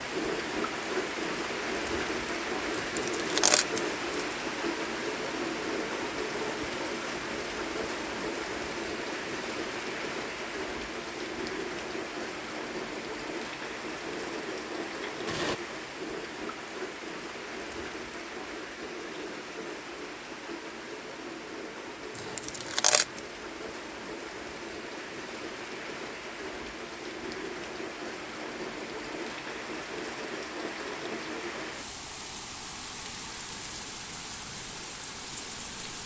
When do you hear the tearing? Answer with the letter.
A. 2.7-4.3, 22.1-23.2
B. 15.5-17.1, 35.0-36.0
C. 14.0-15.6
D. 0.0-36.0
A.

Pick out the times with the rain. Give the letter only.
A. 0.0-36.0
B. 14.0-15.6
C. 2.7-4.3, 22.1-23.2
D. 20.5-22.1
A.